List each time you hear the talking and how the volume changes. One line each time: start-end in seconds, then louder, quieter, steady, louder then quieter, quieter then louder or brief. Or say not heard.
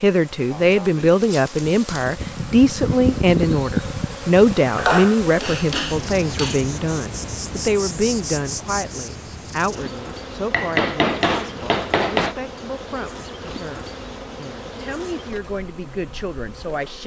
0.0-17.0 quieter.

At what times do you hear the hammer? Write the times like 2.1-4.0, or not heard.
4.8-6.6, 10.5-12.3.